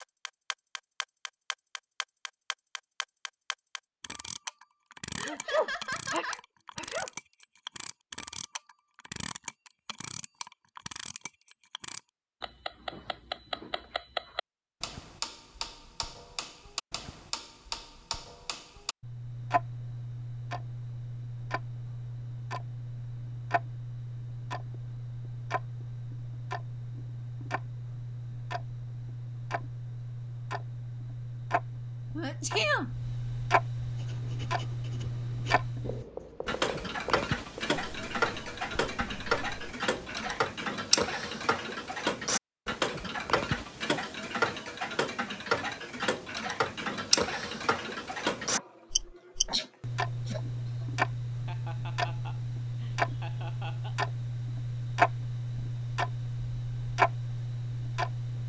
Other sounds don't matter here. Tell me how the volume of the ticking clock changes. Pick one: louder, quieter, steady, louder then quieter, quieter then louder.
louder.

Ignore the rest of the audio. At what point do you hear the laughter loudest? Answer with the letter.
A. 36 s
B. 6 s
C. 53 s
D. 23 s
B.